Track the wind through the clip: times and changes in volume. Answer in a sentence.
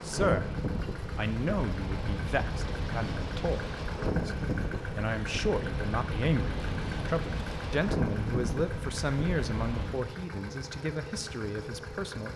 The wind can be heard from 0.0 to 10.1 s, at a steady volume.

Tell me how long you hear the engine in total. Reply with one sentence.
The engine can be heard for 12 seconds in total.